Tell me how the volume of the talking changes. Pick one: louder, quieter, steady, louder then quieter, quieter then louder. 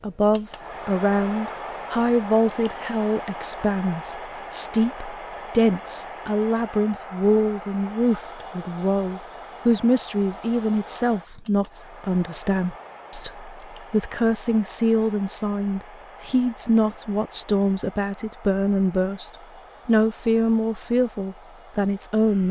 steady.